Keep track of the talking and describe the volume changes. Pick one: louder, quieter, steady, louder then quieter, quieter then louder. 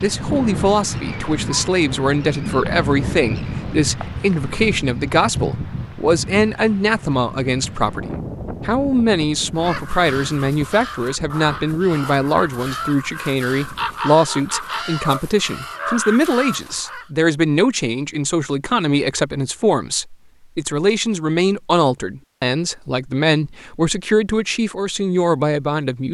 steady.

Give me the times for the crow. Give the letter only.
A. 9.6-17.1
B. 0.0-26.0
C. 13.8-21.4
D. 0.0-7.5
A.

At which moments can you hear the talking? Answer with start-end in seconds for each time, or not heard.
0.0-26.0.